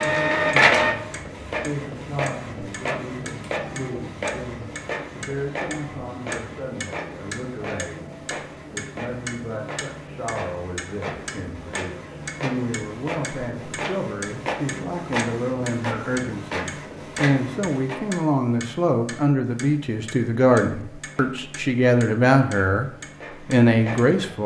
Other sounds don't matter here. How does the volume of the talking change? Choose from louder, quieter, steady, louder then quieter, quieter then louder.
louder.